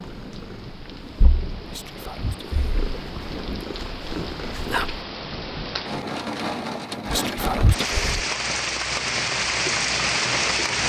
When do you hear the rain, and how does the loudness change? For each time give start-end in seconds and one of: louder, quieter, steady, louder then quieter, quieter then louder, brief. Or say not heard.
0.0-10.8 louder.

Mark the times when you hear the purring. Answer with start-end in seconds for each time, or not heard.
0.1-5.0.